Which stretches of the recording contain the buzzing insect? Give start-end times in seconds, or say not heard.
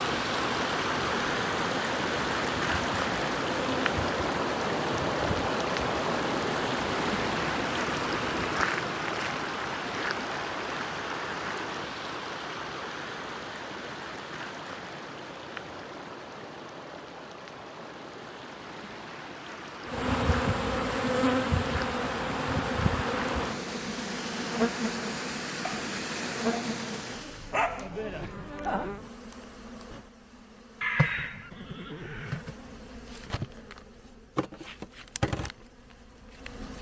0.0-8.7, 19.9-36.7.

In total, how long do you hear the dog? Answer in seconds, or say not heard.
2 s.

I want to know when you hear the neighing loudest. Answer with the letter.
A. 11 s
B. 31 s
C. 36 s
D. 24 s
B.